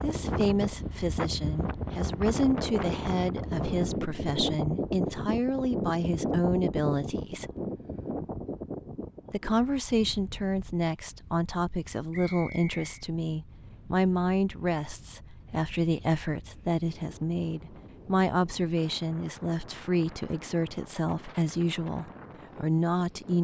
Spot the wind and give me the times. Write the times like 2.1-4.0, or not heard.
0.0-23.3.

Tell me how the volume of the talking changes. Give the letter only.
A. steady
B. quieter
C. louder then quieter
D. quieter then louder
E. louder
A.